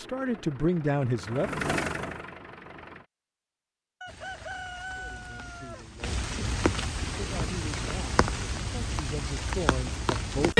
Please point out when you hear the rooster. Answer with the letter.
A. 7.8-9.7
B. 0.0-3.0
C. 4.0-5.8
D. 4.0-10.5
C.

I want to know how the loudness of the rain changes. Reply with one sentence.
The volume of the rain goes up.